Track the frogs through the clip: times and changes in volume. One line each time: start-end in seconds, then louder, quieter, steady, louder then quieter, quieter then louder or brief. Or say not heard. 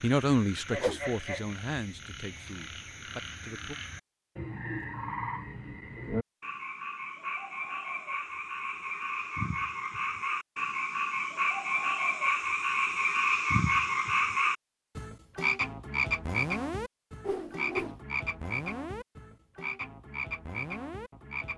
0.0-21.5 louder then quieter.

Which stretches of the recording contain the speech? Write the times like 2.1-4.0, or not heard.
0.0-3.8.